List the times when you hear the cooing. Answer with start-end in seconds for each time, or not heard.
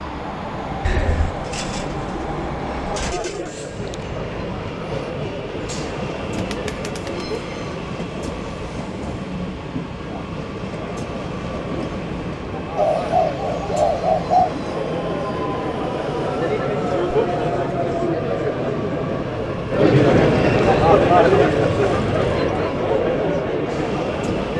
0.8-3.5, 6.3-7.2, 12.8-14.6, 19.9-22.5.